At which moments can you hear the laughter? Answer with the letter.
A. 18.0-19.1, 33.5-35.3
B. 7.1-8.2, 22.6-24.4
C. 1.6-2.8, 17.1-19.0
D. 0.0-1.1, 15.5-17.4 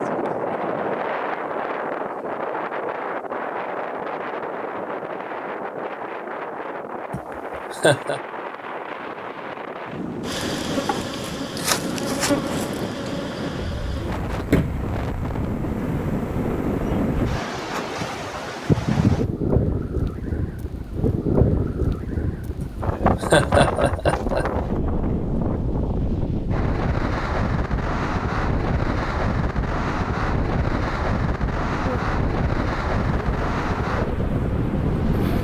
B.